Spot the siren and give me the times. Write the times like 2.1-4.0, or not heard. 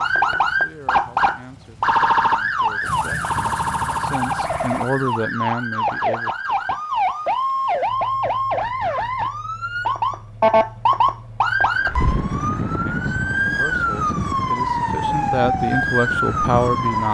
0.0-17.0.